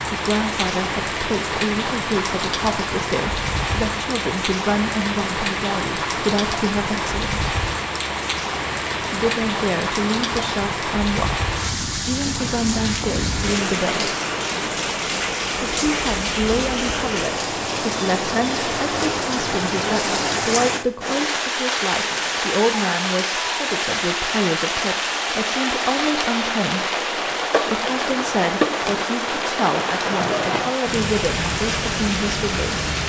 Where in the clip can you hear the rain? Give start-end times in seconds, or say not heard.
0.0-33.0.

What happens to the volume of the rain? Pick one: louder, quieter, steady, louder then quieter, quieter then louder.
steady.